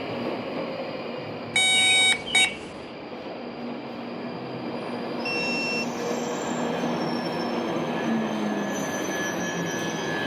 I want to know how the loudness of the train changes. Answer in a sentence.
The volume of the train goes up.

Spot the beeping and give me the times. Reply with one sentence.
The beeping can be heard from 1.6 to 2.6 s and from 5.2 to 5.8 s.